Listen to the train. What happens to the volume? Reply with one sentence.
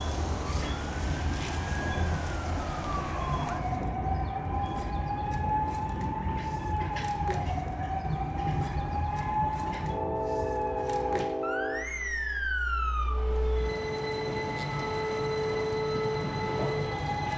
The loudness of the train stays about the same.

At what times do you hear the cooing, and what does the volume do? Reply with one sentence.
The cooing can't be heard in this clip.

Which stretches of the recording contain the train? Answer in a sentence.
The train can be heard from 0.0 to 17.3 s.